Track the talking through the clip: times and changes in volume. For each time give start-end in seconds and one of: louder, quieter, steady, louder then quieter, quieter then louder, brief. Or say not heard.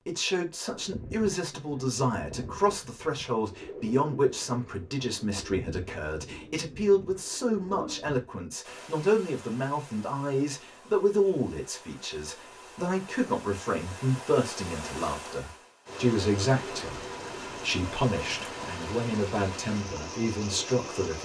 0.0-21.1 steady.